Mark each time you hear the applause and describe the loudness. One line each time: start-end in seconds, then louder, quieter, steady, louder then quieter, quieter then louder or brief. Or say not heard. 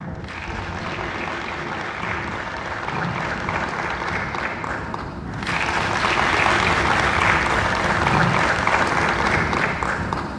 0.0-10.3 louder.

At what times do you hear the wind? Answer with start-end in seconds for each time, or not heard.
0.0-10.3.